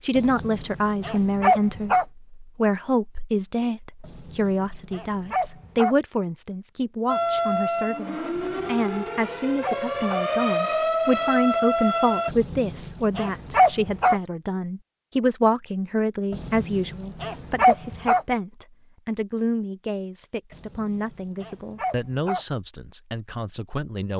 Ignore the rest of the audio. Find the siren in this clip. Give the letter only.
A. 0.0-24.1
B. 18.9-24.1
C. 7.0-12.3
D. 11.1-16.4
C.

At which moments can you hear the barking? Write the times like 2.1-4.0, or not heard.
0.1-2.0, 4.0-6.0, 8.3-10.2, 12.2-14.2, 16.3-18.2, 20.5-22.4.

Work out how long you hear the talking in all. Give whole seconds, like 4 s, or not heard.
24 s.